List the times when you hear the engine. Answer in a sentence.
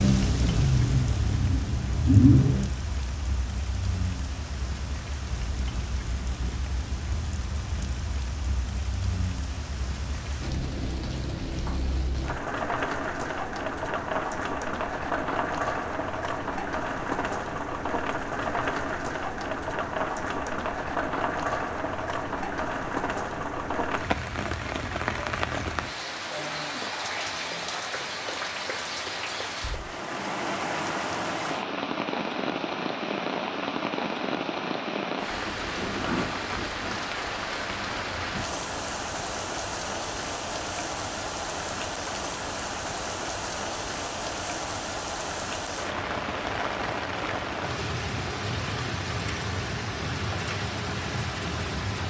The engine can be heard from 0.0 to 2.7 s.